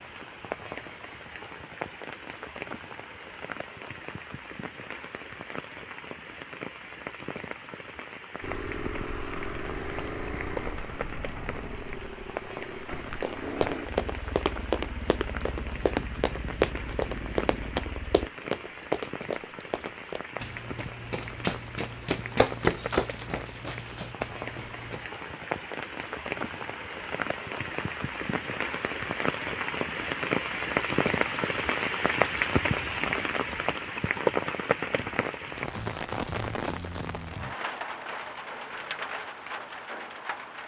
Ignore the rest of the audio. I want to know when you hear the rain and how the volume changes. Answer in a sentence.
You can hear the rain from 0.0 to 40.6 s, getting louder.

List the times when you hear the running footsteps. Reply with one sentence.
The running footsteps can be heard from 13.2 to 25.1 s.